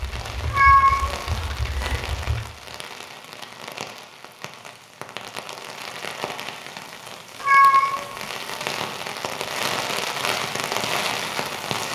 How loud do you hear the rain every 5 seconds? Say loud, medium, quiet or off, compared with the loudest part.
medium, medium, loud.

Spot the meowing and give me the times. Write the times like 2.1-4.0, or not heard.
0.5-2.0, 7.4-8.2.